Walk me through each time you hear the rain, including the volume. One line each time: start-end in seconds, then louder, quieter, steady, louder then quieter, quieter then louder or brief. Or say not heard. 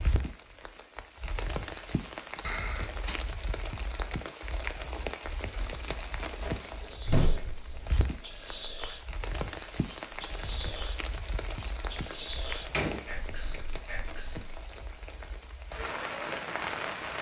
0.0-17.1 steady.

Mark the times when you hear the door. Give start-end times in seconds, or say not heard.
2.4-3.1, 6.4-7.8, 12.2-13.6.